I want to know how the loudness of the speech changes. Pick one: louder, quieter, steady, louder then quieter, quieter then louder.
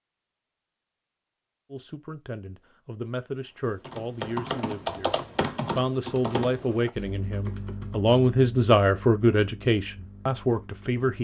louder.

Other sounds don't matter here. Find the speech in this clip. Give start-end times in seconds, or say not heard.
1.7-11.1.